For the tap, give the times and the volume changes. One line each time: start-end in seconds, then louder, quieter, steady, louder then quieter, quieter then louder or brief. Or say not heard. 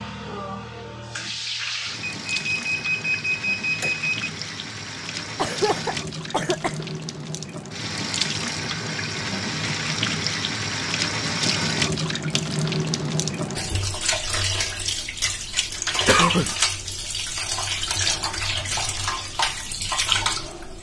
0.0-20.7 louder.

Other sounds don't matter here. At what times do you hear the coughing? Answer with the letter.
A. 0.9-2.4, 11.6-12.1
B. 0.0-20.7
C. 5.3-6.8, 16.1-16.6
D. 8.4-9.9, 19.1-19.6
C.